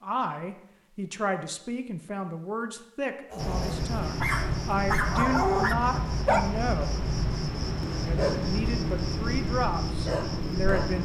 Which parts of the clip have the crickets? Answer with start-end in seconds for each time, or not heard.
3.4-11.0.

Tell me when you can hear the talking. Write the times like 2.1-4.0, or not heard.
0.0-7.0, 8.1-11.0.